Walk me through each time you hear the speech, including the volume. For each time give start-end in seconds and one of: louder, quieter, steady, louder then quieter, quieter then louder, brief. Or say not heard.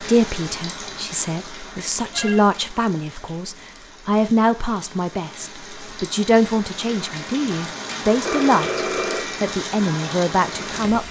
0.0-11.0 steady.